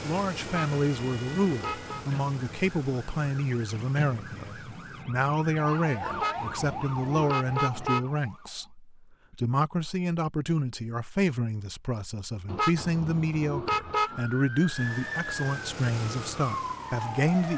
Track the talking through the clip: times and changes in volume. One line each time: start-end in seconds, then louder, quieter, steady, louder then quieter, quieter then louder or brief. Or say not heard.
0.0-17.5 steady.